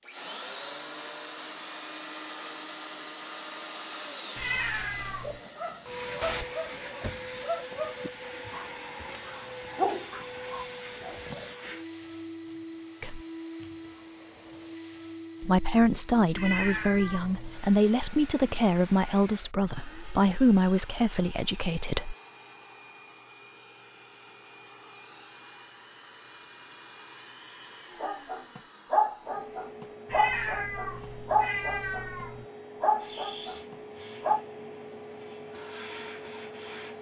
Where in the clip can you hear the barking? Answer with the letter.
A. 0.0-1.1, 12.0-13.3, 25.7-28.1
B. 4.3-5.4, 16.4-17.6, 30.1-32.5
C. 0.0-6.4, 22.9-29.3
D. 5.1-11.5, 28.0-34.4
D.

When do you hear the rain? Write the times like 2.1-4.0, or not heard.
not heard.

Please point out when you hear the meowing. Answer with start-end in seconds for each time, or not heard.
4.3-5.4, 16.4-17.6, 30.1-32.5.